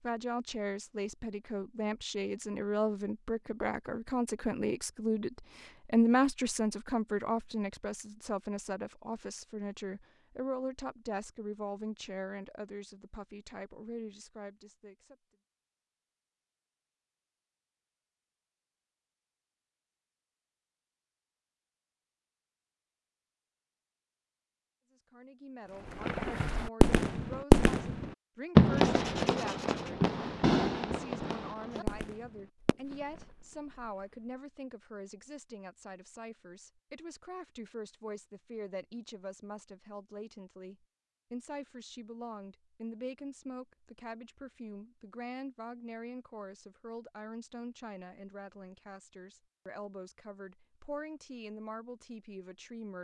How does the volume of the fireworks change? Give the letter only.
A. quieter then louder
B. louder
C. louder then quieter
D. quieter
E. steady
D.